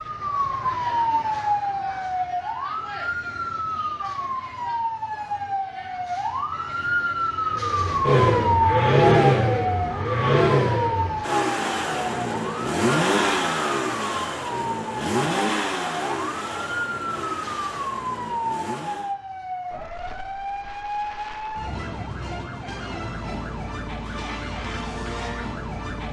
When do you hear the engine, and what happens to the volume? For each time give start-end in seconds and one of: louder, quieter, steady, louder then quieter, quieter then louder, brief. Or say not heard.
7.5-19.1 quieter.